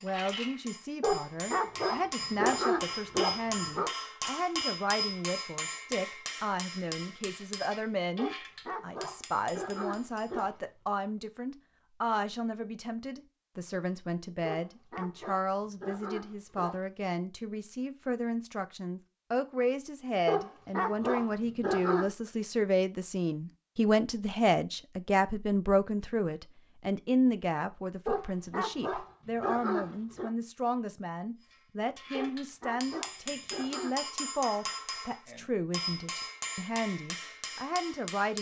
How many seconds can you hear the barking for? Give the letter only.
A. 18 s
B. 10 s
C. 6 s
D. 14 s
D.